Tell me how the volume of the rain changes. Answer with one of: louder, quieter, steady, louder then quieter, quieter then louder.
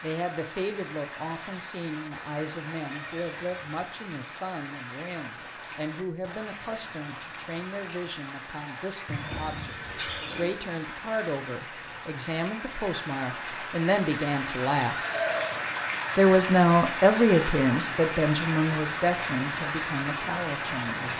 louder.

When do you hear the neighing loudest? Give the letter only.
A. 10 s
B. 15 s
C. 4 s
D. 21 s
B.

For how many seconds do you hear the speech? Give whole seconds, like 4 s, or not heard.
19 s.